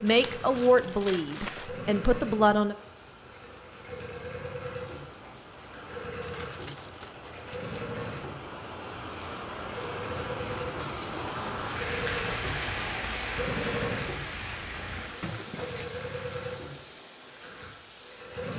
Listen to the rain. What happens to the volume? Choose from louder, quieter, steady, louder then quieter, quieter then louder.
louder then quieter.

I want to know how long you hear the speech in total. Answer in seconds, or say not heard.
3 s.